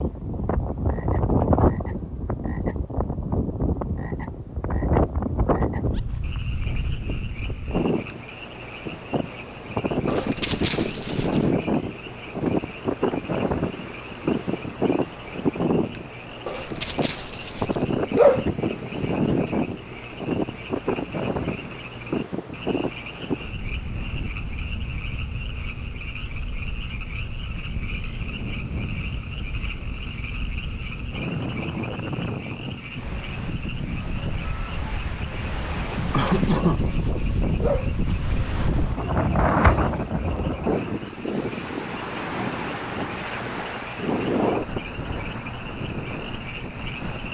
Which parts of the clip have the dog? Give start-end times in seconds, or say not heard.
10.1-11.4, 16.4-18.4, 35.9-38.0.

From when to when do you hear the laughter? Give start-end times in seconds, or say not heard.
36.1-36.9.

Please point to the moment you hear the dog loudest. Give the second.
18 s.